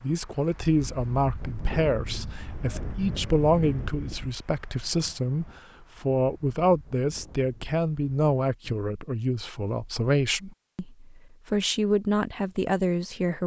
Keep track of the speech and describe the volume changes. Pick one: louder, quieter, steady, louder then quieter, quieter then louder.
steady.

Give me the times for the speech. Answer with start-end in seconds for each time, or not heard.
0.0-13.4.